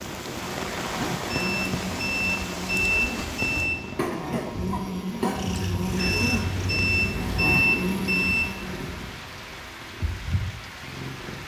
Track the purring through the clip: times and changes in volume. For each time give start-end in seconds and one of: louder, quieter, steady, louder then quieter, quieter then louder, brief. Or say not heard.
5.3-11.4 quieter then louder.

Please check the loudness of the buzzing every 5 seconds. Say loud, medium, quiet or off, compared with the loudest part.
loud, loud, off.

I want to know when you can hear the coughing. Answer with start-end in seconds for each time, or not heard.
4.0-5.5.